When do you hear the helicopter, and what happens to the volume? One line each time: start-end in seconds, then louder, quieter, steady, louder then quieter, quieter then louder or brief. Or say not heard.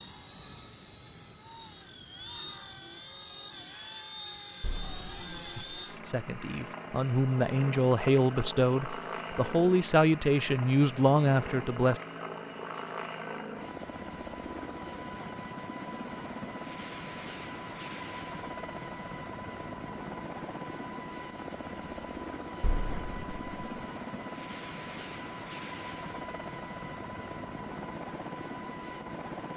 0.0-29.5 steady.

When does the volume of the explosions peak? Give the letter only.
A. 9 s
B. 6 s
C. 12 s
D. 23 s
D.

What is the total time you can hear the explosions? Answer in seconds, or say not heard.
2 s.